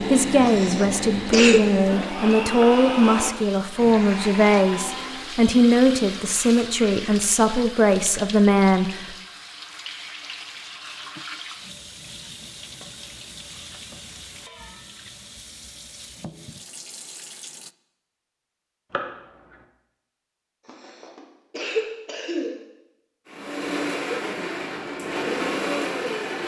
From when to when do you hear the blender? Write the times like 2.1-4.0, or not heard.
0.0-5.5, 23.2-26.4.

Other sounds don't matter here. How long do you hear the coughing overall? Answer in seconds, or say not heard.
3 s.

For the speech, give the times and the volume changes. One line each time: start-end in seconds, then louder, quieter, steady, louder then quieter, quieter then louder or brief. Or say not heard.
0.0-9.2 steady.